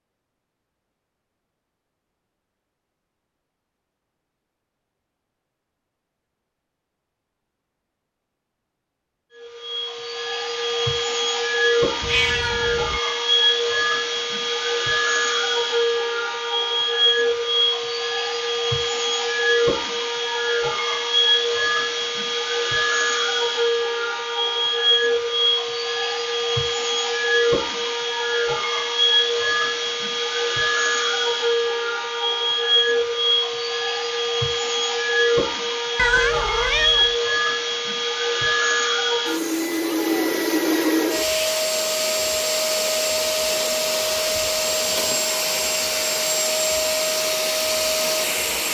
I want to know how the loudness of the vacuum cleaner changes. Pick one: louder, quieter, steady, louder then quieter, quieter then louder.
steady.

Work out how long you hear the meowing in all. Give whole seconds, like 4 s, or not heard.
2 s.